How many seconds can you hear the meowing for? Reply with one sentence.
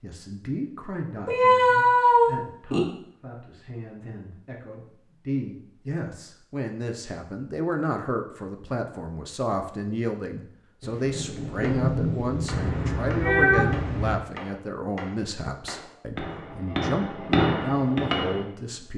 The meowing can be heard for 3 seconds in total.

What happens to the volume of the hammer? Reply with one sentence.
The loudness of the hammer goes up.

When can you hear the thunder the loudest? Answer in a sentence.
The volume of the thunder peaks at 12 seconds.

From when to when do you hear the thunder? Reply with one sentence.
You can hear the thunder from 10.8 to 14.1 s.